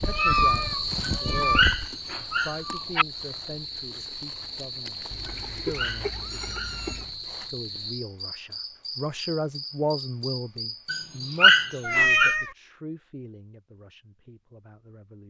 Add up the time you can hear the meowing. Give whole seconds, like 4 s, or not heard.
4 s.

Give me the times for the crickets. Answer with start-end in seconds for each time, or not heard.
0.0-11.4.